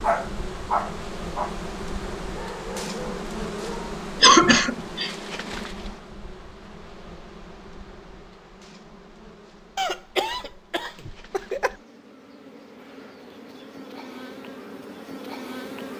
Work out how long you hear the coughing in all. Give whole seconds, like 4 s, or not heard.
3 s.